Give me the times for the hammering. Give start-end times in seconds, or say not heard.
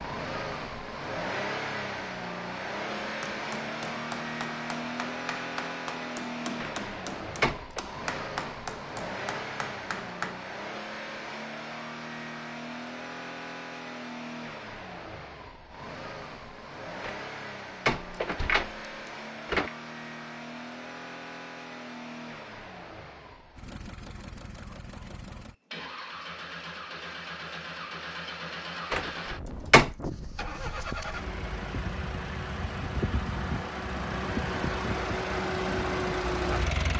2.9-10.3.